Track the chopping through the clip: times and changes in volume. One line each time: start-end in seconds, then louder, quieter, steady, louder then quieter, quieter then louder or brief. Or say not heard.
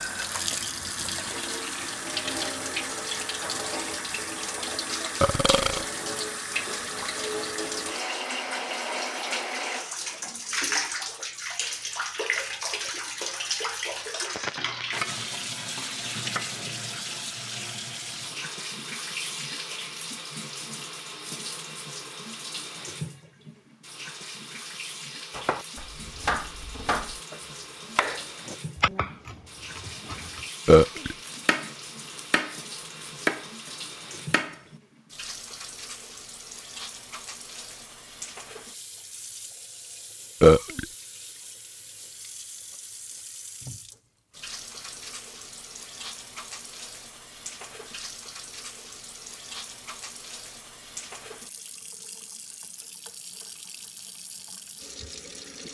25.3-34.6 quieter then louder.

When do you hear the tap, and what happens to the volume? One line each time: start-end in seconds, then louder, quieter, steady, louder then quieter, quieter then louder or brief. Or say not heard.
0.0-55.7 quieter.